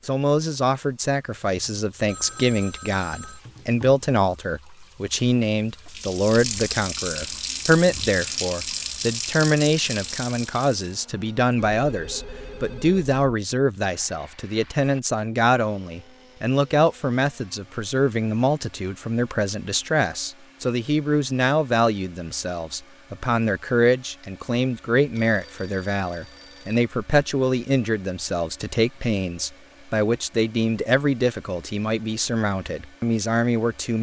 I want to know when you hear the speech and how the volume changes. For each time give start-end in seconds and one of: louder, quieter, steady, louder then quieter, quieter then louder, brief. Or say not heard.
0.0-33.9 steady.